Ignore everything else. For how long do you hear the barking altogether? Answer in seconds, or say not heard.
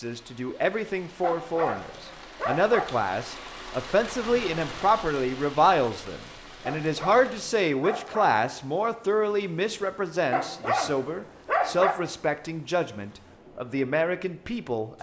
5 s.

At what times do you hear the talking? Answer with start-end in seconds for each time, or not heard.
0.0-14.9.